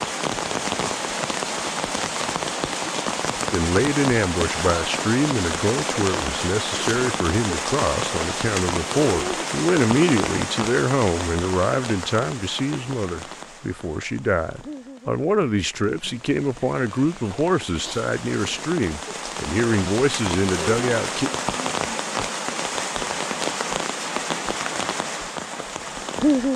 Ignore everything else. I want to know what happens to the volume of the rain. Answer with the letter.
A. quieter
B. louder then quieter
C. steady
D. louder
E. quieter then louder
E.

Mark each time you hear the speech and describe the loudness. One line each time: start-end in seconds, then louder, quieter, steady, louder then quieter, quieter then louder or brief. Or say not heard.
3.5-21.3 steady.